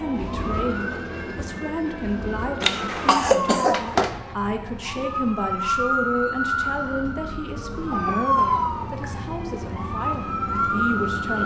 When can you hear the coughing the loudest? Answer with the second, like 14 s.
3 s.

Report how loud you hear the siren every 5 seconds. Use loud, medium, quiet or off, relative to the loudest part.
medium, loud, loud.